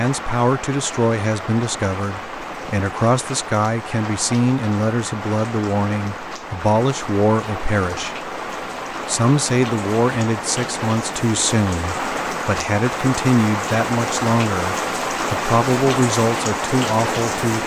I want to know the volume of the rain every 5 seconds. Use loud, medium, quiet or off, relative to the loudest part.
medium, medium, loud, loud.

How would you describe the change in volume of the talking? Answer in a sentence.
The volume of the talking stays about the same.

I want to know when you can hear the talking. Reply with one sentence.
The talking can be heard from 0.0 to 8.3 s and from 9.1 to 17.6 s.